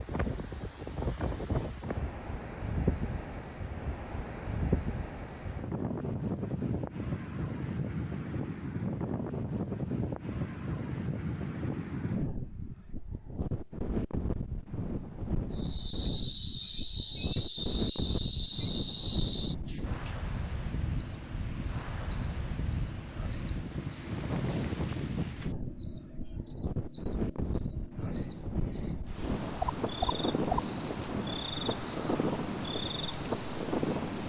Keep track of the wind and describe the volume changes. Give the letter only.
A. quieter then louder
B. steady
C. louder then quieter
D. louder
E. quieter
B.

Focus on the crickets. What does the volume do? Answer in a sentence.
The volume of the crickets stays about the same.